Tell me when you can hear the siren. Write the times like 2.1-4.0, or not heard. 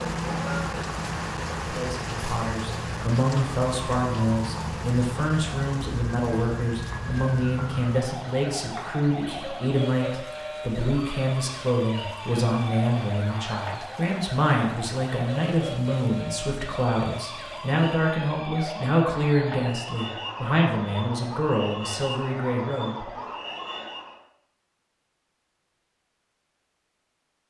0.0-24.2.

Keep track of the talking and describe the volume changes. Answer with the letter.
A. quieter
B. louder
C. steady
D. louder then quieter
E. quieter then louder
C.